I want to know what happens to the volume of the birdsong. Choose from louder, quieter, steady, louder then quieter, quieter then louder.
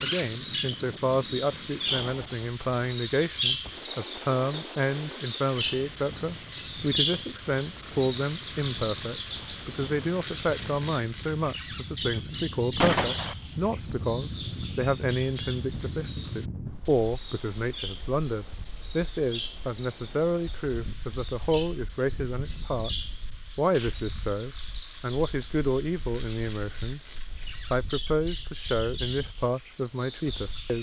quieter.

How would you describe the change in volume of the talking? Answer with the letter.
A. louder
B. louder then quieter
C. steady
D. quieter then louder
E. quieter
C.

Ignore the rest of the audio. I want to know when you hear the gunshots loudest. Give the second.
13 s.